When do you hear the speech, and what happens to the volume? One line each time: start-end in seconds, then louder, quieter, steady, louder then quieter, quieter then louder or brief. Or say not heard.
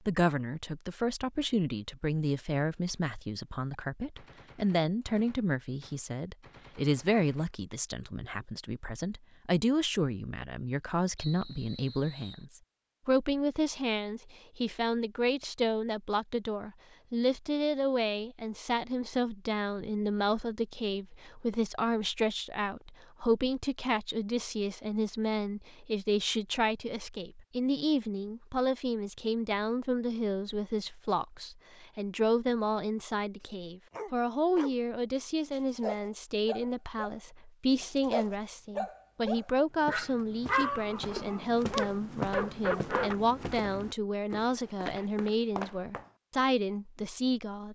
0.1-47.6 steady.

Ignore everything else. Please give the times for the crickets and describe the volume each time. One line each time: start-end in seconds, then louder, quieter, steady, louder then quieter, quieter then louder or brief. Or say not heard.
not heard.